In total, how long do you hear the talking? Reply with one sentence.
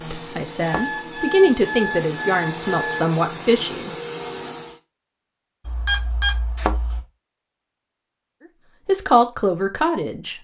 The talking can be heard for 5 seconds in total.